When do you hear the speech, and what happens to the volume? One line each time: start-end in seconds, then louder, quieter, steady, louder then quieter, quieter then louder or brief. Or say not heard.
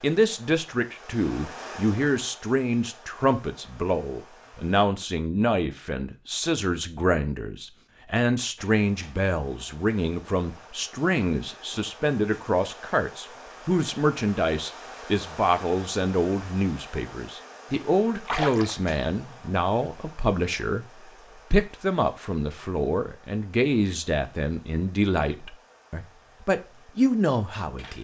0.0-20.9 steady
21.5-27.9 quieter then louder.